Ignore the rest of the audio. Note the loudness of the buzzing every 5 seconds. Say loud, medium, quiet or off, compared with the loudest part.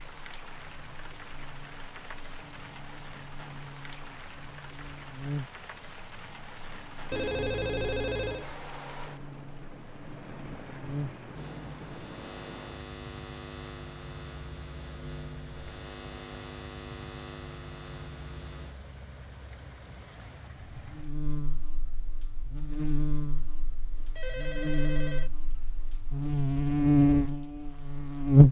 quiet, quiet, quiet, quiet, quiet, loud.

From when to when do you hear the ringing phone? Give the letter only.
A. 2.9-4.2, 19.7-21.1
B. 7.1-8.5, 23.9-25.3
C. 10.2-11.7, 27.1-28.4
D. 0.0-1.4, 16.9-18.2
B.